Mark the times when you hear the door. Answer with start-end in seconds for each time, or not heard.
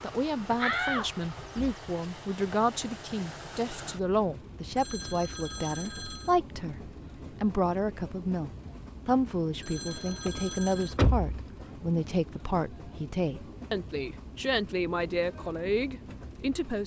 0.6-1.8, 10.2-11.5.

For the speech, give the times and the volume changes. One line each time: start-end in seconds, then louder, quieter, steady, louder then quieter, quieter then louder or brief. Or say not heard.
0.0-16.8 steady.